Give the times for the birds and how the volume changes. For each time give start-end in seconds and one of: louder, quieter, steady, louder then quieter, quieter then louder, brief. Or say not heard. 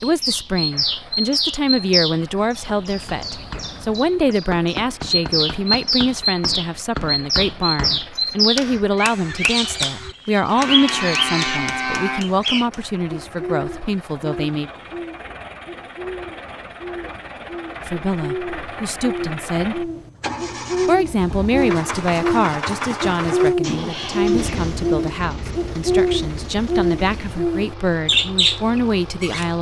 0.0-29.5 quieter then louder.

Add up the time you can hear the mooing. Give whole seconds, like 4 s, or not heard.
2 s.